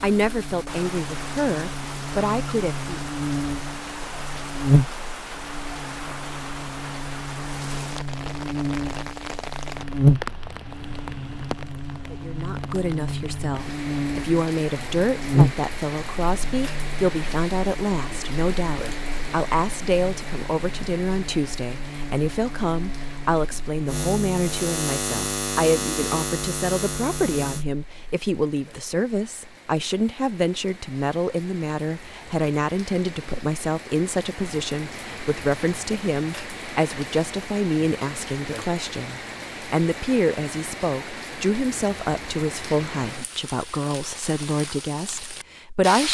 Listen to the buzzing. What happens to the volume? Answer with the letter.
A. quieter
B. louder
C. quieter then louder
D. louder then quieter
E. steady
C.